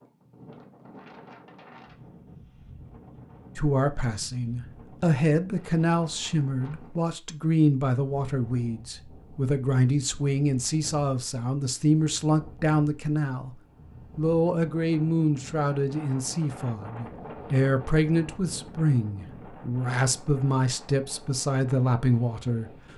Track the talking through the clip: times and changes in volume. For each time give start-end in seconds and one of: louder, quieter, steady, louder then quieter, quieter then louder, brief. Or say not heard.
3.5-13.5 steady
14.2-22.7 steady.